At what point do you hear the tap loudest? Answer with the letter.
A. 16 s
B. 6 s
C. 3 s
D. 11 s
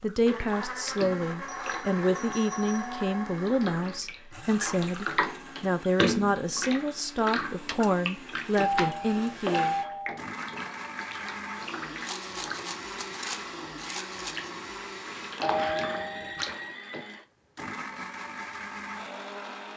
B.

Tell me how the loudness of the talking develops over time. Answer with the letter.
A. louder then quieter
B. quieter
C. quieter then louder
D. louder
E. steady
E.